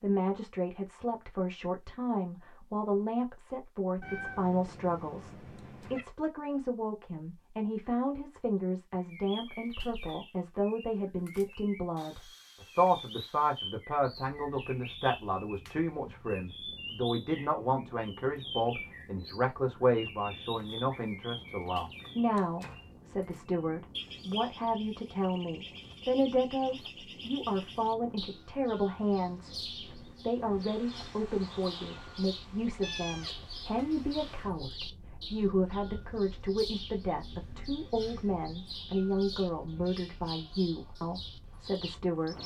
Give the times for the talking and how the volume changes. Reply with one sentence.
You can hear the talking from 0.0 to 42.4 s, at a steady volume.